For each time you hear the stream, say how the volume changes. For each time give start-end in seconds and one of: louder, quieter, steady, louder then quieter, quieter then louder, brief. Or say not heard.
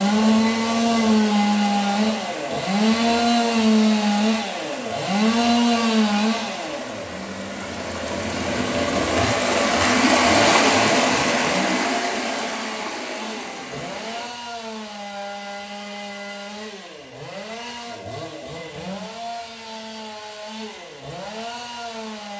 0.0-14.3 louder then quieter.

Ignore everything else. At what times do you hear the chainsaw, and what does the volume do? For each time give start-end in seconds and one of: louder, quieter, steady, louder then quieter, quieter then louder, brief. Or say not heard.
0.0-22.3 quieter.